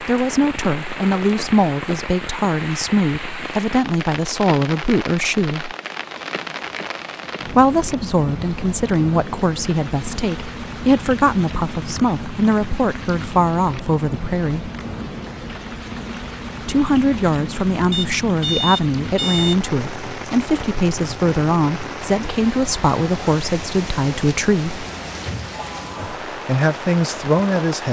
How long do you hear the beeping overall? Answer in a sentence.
You can hear the beeping for 2 seconds altogether.